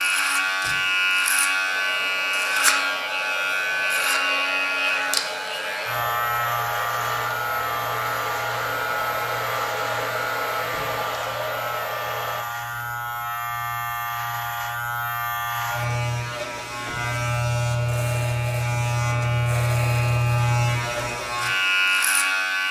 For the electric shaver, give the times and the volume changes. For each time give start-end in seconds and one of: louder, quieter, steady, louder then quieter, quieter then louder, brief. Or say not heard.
0.0-22.6 quieter then louder.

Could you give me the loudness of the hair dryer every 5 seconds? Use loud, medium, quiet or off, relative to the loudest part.
medium, loud, loud, off, off.